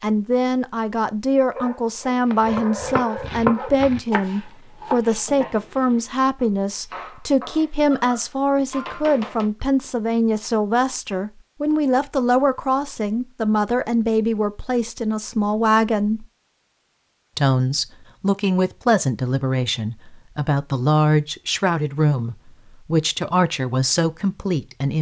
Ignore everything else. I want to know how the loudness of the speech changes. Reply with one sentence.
The loudness of the speech stays about the same.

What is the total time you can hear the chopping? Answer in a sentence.
The chopping can be heard for 7 seconds in total.